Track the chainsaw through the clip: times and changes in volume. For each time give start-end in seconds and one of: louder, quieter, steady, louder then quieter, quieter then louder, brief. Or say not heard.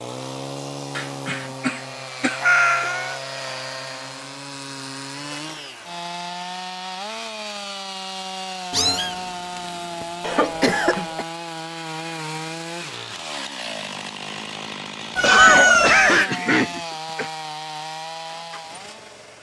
0.0-19.3 steady.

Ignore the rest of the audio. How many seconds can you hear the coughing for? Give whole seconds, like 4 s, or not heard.
5 s.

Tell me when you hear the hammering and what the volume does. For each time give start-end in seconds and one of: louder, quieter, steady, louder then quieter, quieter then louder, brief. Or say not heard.
not heard.